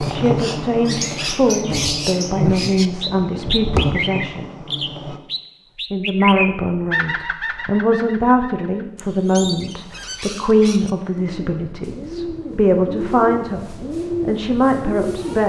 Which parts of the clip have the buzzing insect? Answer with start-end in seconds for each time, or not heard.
0.0-5.2.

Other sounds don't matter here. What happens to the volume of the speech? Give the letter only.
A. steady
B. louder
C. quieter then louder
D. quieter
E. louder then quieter
A.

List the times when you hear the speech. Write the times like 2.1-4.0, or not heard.
0.1-4.5, 5.9-15.4.